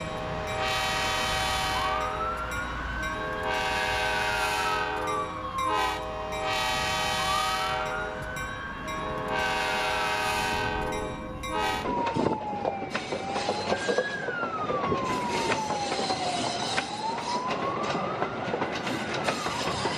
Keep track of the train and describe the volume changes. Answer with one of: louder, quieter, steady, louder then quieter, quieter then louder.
steady.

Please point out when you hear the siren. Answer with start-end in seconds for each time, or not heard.
0.0-19.9.